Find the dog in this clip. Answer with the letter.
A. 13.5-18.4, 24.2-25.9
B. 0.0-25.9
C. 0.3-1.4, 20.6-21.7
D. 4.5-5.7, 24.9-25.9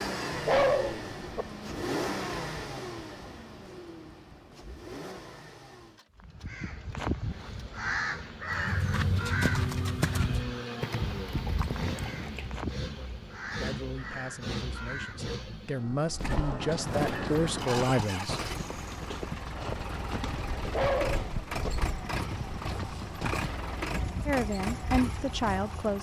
C.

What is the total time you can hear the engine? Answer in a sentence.
The engine can be heard for 26 seconds in total.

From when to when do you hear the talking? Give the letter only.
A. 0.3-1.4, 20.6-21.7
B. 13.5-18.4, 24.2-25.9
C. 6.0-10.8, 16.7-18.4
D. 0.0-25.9
B.